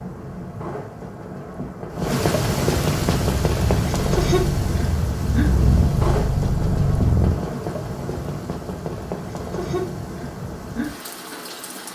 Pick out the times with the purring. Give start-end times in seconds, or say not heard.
3.1-7.4.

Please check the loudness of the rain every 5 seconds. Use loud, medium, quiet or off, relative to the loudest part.
loud, loud, medium.